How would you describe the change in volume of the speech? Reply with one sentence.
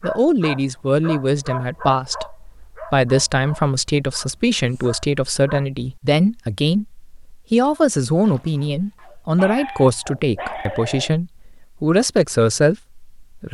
The loudness of the speech stays about the same.